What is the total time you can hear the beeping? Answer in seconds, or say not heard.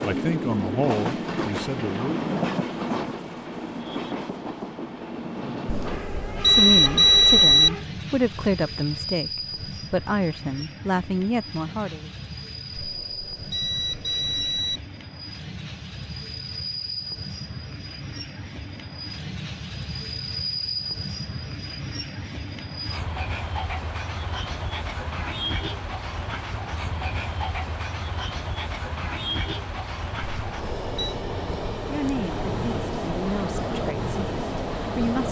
5 s.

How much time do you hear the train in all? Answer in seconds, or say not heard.
35 s.